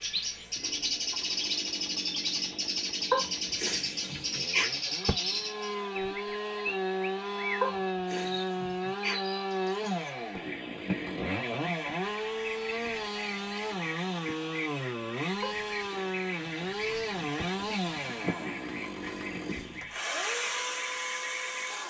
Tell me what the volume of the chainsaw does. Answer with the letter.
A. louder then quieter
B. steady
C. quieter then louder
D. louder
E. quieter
D.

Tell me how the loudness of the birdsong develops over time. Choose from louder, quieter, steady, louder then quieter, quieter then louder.
quieter.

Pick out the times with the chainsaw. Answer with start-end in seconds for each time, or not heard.
0.0-21.8.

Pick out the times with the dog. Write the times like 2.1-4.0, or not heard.
3.1-5.2, 7.6-9.2, 15.4-17.4.